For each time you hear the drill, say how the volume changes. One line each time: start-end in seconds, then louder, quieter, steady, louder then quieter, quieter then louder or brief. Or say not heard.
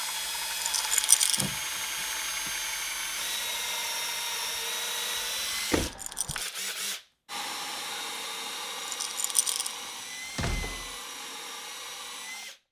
0.0-12.6 quieter.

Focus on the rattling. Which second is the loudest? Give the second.
1 s.